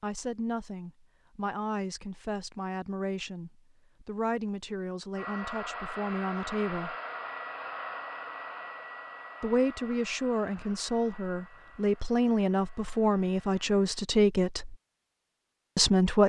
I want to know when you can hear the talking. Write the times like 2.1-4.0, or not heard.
0.0-7.0, 9.4-14.8, 15.8-16.2.